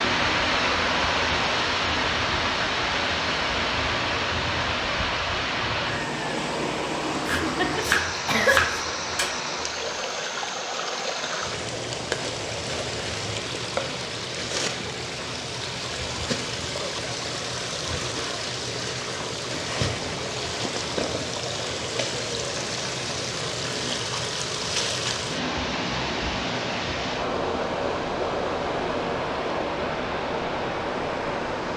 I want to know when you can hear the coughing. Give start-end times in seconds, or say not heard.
7.2-8.6.